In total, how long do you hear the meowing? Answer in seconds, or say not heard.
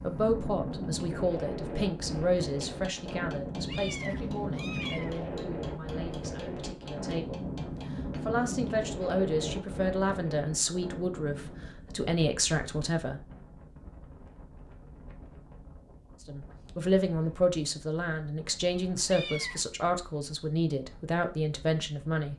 2 s.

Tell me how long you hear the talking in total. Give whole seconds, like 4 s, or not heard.
19 s.